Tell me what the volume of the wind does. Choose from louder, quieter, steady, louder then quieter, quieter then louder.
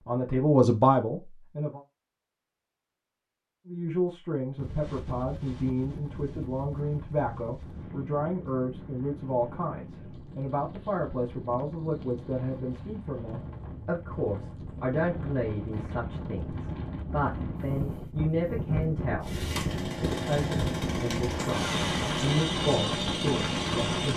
louder.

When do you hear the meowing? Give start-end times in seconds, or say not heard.
not heard.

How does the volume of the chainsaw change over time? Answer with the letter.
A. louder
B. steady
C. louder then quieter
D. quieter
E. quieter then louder
B.